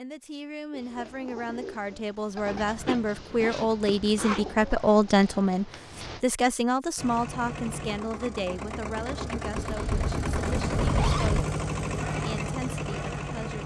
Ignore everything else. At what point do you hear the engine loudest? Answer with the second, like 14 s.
11 s.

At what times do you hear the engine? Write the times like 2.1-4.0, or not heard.
7.0-13.6.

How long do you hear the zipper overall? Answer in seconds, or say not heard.
4 s.